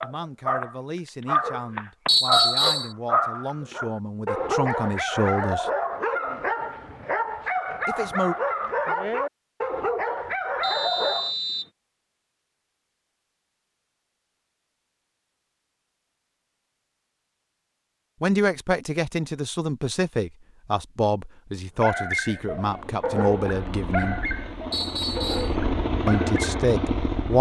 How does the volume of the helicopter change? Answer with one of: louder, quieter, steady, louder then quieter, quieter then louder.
louder.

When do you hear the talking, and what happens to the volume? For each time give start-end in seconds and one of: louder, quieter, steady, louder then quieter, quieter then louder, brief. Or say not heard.
0.0-5.7 louder
7.8-8.3 brief
18.2-24.2 steady
26.1-27.3 brief.